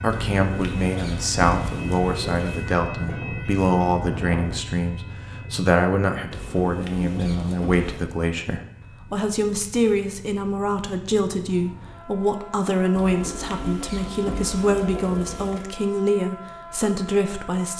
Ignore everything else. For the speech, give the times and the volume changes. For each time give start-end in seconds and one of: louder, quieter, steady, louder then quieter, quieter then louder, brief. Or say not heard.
0.0-17.7 steady.